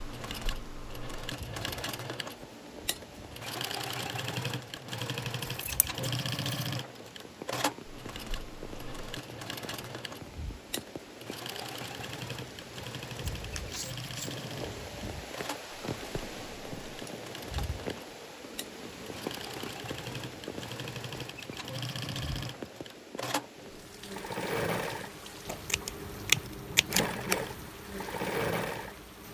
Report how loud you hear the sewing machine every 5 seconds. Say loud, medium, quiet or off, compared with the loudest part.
loud, loud, medium, medium, loud, loud.